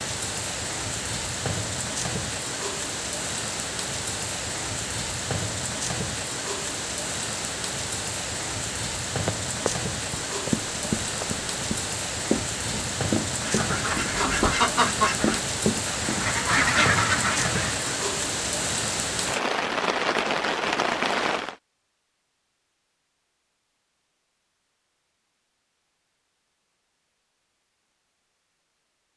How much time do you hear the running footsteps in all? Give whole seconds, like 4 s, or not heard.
7 s.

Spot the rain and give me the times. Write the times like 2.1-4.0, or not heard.
0.0-21.6.